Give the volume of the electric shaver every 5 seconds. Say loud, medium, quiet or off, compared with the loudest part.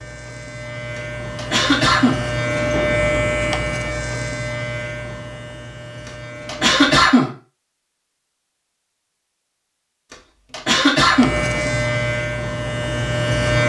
loud, quiet, loud.